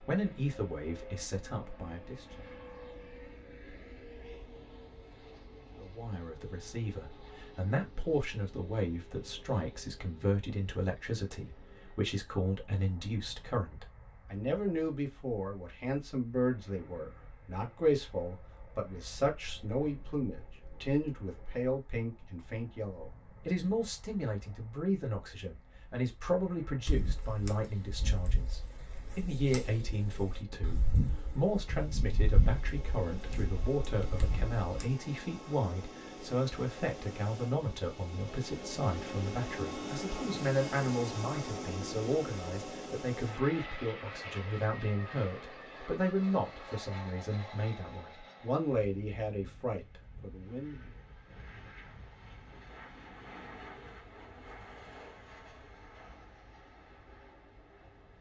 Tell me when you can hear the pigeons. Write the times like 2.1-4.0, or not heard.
26.9-35.0.